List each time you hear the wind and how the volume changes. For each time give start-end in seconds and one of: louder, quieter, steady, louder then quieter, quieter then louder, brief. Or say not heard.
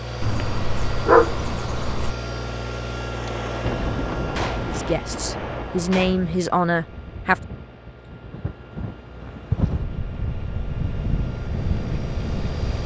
3.6-12.8 quieter then louder.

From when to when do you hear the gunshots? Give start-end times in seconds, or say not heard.
3.1-6.2.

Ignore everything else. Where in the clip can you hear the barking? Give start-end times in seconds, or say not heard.
0.2-2.1.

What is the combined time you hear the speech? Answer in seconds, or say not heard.
3 s.